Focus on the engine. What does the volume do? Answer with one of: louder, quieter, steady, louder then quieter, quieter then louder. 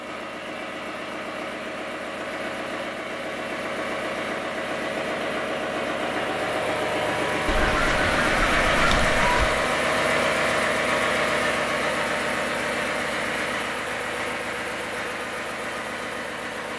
louder then quieter.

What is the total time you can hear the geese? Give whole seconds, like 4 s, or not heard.
2 s.